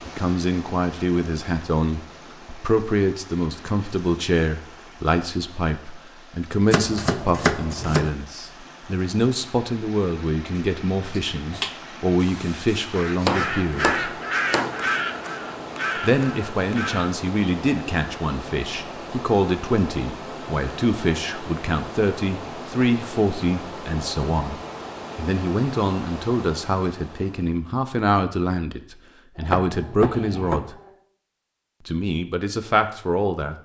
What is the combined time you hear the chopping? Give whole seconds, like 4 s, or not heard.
4 s.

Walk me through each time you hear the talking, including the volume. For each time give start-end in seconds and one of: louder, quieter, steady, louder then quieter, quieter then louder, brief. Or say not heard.
0.1-14.0 steady
16.0-30.8 steady
31.9-33.6 brief.